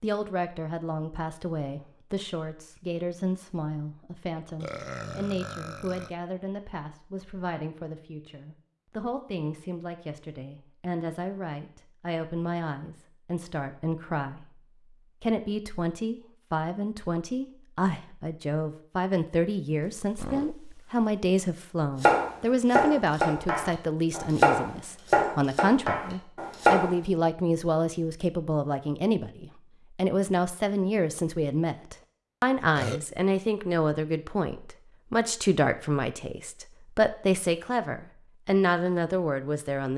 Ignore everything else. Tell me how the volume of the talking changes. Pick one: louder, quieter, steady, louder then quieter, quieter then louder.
louder.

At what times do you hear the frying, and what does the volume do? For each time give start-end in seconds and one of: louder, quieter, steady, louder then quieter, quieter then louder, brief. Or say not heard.
not heard.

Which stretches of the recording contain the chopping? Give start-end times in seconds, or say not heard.
22.0-26.9.